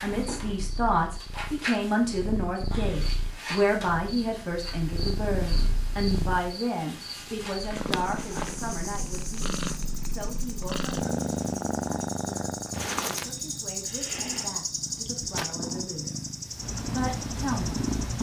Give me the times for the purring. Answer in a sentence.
You can hear the purring from 0.0 to 18.1 s.